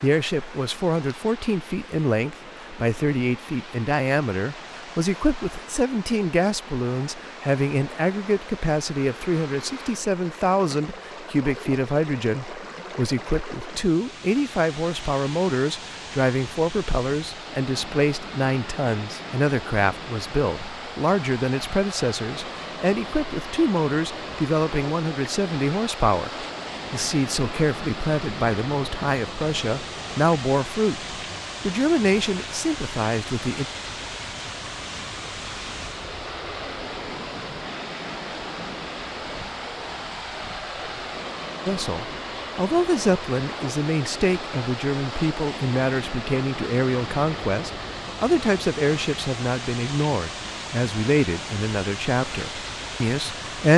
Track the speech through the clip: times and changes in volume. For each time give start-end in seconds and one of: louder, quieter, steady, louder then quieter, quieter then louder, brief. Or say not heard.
0.0-31.1 steady
31.6-33.6 brief
41.6-53.7 steady.